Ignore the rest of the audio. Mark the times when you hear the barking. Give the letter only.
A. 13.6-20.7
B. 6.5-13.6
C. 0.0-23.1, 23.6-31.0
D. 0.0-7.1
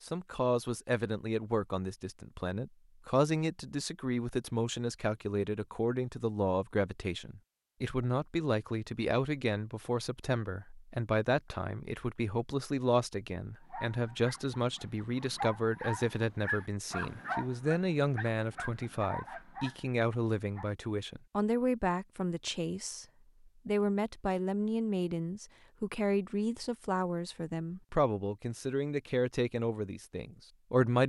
A.